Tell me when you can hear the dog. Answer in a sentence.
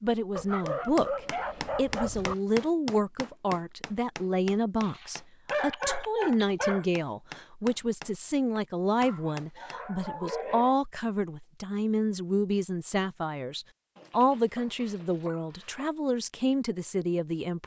You can hear the dog from 0.3 to 2.4 s, from 4.8 to 6.8 s, from 9.0 to 10.8 s and from 13.9 to 15.9 s.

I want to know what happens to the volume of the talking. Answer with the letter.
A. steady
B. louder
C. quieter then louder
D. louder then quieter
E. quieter
A.